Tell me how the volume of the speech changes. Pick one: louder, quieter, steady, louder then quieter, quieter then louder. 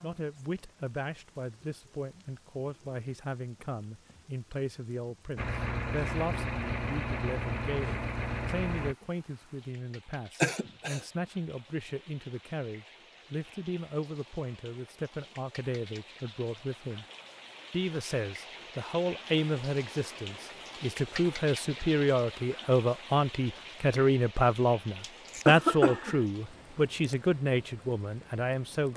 louder.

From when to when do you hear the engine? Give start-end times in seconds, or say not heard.
5.3-8.9.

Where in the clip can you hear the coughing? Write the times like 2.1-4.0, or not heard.
10.4-11.0, 25.0-26.2.